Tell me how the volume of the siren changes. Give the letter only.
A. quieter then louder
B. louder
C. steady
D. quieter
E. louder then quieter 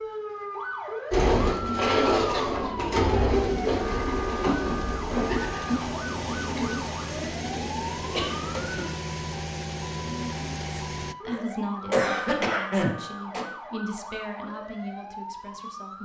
D.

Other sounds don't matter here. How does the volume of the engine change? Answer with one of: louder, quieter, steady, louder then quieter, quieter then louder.
louder.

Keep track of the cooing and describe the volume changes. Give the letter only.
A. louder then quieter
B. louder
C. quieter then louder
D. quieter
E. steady
D.